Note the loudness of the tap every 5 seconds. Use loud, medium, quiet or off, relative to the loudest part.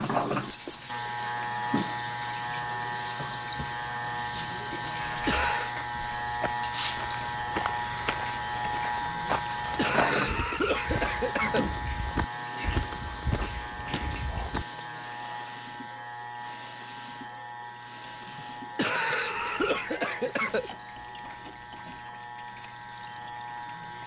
loud, loud, medium, medium, quiet.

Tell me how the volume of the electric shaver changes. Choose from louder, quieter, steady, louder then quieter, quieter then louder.
quieter.